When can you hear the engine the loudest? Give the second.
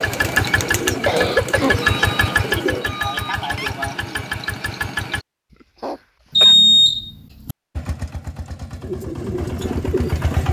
2 s.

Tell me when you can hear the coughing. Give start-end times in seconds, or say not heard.
1.1-2.4, 5.8-6.5.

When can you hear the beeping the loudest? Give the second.
7 s.